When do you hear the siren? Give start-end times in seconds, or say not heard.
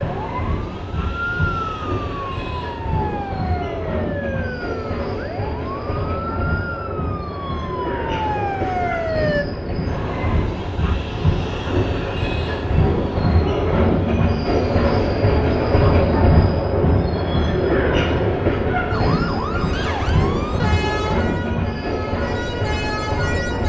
0.0-9.4, 18.9-23.6.